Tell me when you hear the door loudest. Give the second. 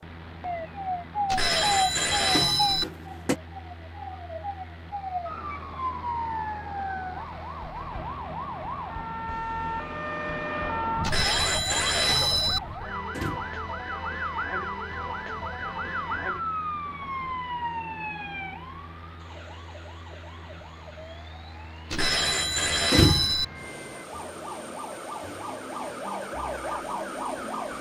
23 s.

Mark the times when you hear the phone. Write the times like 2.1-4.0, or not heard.
1.3-2.9, 11.0-12.6, 21.9-23.4.